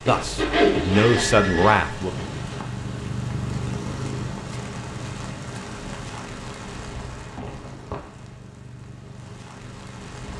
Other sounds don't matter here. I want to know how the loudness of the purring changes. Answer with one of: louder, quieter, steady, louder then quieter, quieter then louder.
quieter.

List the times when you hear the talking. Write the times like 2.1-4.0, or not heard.
0.1-2.2.